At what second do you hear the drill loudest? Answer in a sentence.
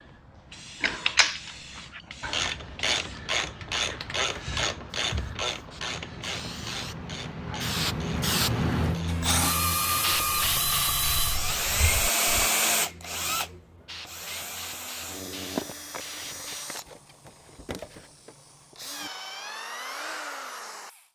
The volume of the drill peaks at 12 seconds.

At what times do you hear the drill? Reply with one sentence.
The drill can be heard from 9.1 to 21.1 s.